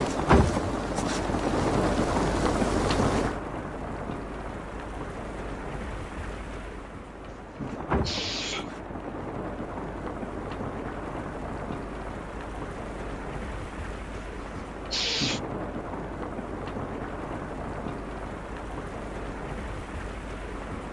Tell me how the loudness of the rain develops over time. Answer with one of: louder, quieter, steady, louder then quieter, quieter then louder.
quieter.